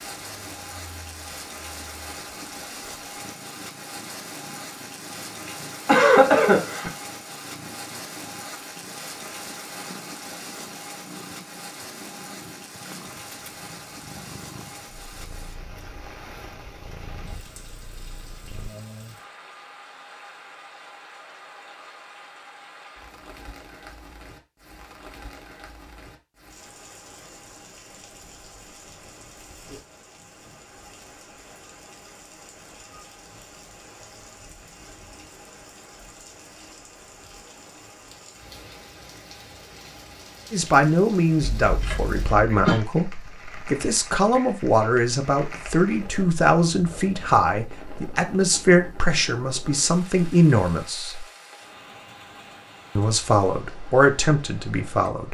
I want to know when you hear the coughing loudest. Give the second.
6 s.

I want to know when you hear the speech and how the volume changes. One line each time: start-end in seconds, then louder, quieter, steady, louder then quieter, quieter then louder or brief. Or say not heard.
40.5-51.2 steady
53.0-55.2 brief.